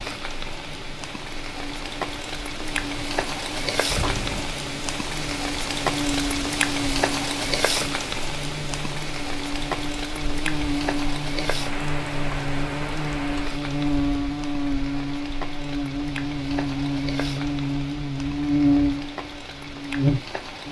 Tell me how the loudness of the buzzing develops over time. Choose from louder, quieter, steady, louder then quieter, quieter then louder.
louder.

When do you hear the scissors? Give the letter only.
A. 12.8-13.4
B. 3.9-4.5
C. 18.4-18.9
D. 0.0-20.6
B.